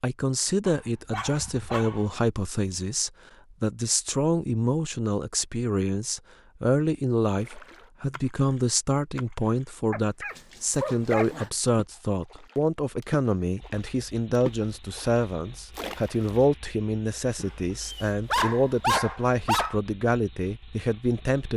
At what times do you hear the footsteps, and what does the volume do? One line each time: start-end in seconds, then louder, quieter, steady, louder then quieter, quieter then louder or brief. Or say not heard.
not heard.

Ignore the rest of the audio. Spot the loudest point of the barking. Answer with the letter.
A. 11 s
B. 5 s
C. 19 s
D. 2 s
C.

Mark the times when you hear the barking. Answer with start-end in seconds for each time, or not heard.
0.7-2.0, 9.9-11.5, 17.4-19.8.